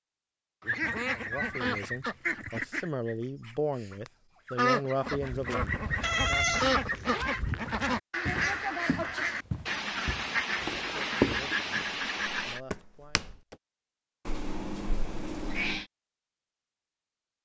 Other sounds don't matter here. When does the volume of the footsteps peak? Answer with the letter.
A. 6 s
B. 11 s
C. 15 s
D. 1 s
B.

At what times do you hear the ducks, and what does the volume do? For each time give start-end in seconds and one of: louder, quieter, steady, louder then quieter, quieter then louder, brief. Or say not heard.
0.6-12.6 steady.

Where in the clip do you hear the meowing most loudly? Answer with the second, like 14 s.
6 s.